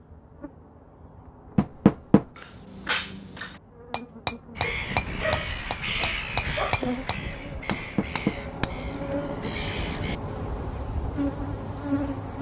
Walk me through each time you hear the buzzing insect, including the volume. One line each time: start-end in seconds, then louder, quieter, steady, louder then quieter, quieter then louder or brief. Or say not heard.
0.0-12.3 louder.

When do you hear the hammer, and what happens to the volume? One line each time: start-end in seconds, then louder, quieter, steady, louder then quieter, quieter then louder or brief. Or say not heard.
2.4-9.2 louder then quieter.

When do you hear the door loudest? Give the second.
2 s.